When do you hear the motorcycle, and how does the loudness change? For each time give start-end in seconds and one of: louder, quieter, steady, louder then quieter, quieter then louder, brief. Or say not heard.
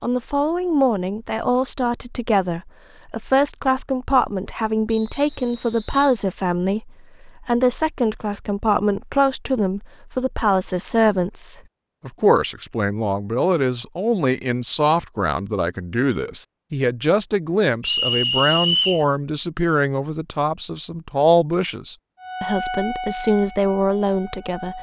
not heard.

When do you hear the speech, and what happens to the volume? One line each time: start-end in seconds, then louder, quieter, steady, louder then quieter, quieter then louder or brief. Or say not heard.
0.0-24.7 steady.